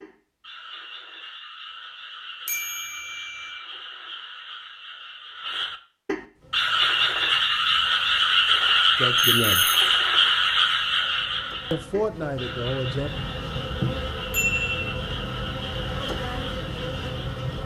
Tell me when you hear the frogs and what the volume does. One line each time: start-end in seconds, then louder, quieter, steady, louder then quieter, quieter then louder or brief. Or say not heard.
0.0-17.6 louder then quieter.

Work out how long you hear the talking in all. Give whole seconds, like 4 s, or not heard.
2 s.